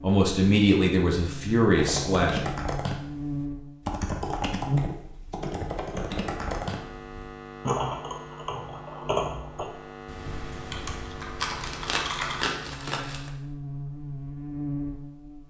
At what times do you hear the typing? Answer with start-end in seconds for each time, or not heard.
1.8-12.4.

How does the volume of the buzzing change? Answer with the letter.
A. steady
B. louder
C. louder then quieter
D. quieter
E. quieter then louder
E.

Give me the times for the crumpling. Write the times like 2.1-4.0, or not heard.
11.3-13.3.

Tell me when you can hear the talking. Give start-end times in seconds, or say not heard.
0.0-2.5.